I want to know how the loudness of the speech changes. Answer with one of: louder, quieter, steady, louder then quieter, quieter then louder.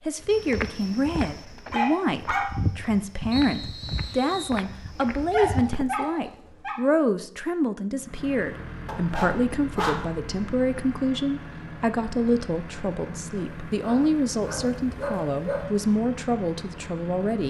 steady.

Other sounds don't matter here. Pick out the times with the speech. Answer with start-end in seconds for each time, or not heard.
0.1-17.4.